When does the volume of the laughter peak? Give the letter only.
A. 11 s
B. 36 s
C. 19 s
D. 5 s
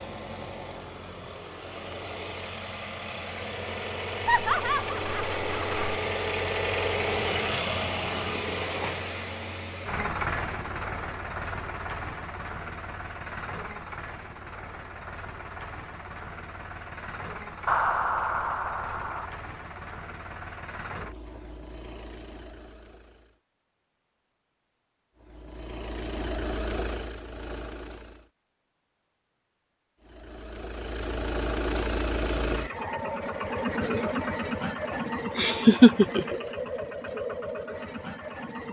B.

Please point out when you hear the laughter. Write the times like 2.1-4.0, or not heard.
4.2-6.0, 17.6-19.3, 34.9-36.4.